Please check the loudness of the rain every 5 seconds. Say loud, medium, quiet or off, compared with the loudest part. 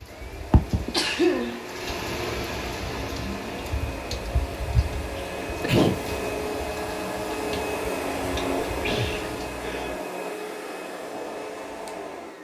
loud, medium, off.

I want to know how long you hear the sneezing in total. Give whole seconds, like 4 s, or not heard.
3 s.